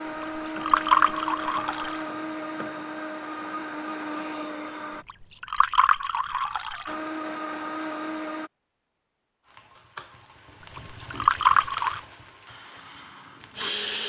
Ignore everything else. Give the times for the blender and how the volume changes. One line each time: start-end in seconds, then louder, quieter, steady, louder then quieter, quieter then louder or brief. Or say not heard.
0.0-5.0 steady
6.8-8.5 brief
12.4-14.0 brief.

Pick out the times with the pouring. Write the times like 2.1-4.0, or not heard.
0.2-2.0, 5.0-7.0, 10.8-12.0.